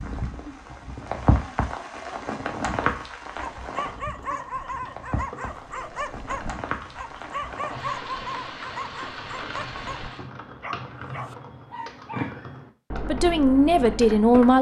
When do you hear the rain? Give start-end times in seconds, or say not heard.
0.0-10.3.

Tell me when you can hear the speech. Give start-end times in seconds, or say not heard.
13.1-14.5.